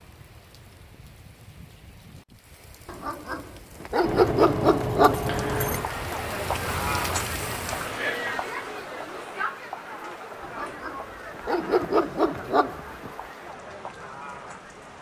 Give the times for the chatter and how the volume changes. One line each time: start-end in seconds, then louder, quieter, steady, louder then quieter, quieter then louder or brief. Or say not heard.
5.2-14.9 quieter.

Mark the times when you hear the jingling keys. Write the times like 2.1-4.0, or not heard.
4.0-5.9.